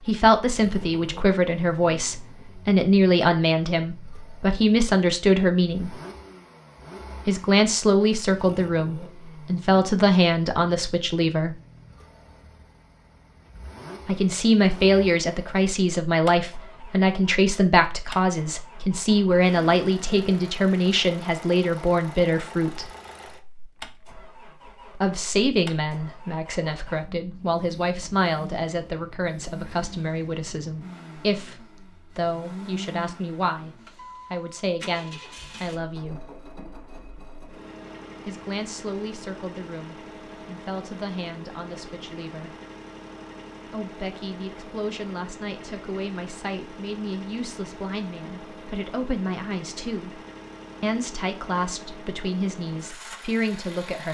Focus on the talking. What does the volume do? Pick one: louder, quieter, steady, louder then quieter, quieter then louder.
quieter.